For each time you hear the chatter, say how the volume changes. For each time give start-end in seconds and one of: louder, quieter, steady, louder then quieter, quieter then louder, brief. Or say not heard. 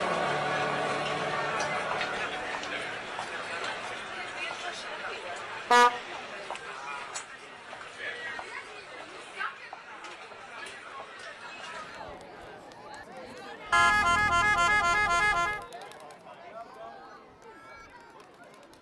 0.0-18.7 quieter.